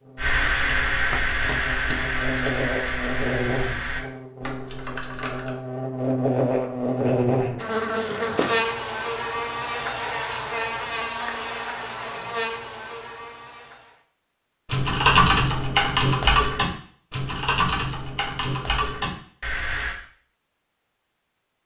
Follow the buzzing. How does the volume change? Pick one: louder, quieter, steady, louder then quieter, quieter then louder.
louder then quieter.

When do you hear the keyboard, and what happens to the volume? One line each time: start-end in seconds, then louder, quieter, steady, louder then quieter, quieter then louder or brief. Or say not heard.
0.1-5.5 quieter
14.7-19.9 quieter.